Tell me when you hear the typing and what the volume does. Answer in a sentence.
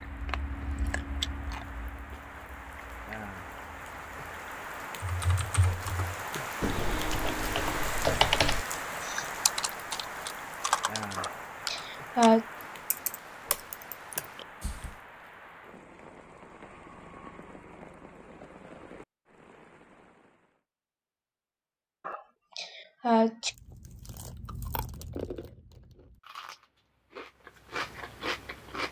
You can hear the typing from 5.0 to 15.0 s, getting louder then quieter.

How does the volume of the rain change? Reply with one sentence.
The volume of the rain goes up, then down.